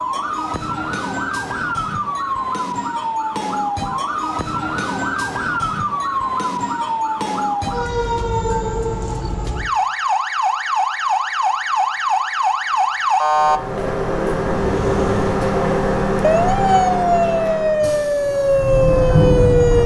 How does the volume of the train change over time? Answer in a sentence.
The loudness of the train goes down, then up.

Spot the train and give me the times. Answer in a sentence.
The train can be heard from 13.3 to 19.8 s.